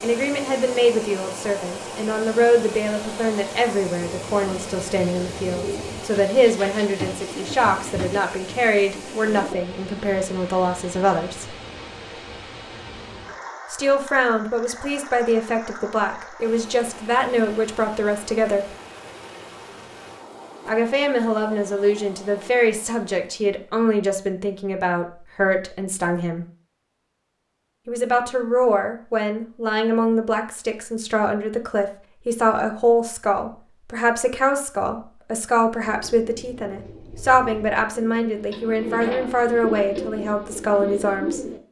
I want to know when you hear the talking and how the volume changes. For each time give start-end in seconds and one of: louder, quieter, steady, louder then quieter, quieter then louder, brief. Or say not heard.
0.0-11.6 steady
13.7-18.6 steady
20.6-26.4 steady
27.9-41.4 steady.